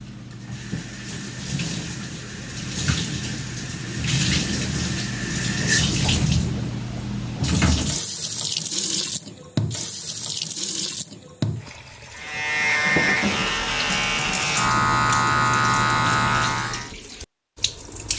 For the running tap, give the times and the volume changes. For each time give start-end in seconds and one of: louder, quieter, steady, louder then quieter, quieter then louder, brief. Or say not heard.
0.0-18.1 louder then quieter.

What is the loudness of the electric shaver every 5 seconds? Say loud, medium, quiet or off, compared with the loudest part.
off, off, loud, loud.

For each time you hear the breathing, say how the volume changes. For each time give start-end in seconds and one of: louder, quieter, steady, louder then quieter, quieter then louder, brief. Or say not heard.
not heard.